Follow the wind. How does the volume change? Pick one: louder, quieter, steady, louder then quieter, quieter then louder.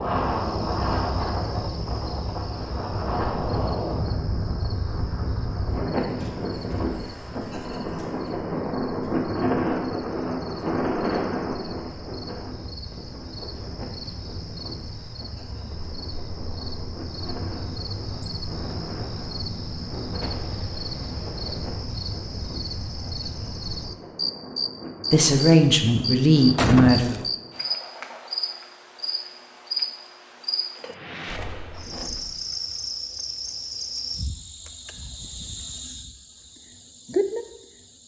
quieter.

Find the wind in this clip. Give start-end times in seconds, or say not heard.
0.0-27.6.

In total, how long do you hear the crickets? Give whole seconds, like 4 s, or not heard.
38 s.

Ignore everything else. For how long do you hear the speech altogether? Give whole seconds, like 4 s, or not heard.
2 s.